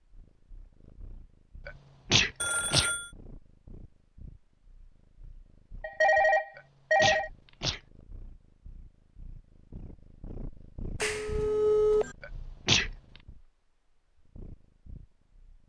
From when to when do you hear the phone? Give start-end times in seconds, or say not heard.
2.4-3.1, 5.8-7.3, 11.0-12.2.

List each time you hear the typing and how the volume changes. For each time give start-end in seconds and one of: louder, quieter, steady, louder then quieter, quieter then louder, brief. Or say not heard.
not heard.